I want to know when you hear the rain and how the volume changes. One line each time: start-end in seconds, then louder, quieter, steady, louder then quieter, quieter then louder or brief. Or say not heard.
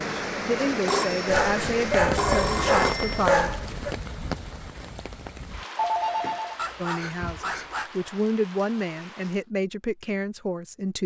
0.0-9.4 quieter.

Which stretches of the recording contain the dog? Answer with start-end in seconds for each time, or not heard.
1.2-3.9, 6.5-7.9.